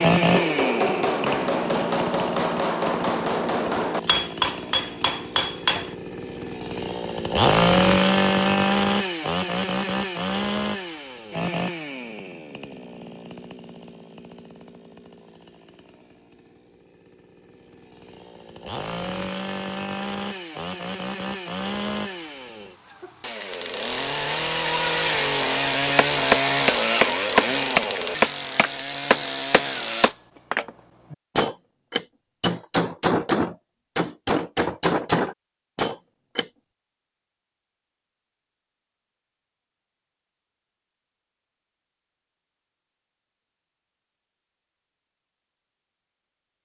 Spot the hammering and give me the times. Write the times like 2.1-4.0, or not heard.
0.2-6.0, 25.9-36.5.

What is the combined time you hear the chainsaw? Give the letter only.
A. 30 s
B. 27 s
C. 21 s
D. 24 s
A.